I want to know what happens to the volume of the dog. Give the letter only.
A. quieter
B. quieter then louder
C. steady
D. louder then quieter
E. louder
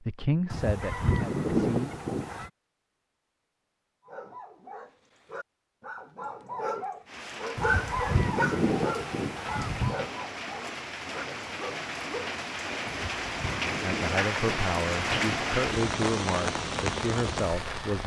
D.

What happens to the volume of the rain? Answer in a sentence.
The loudness of the rain goes up.